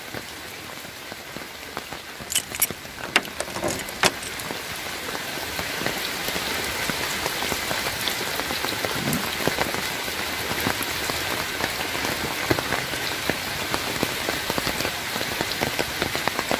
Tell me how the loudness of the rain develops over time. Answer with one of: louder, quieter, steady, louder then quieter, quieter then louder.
louder.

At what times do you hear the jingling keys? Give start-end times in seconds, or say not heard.
2.3-4.5.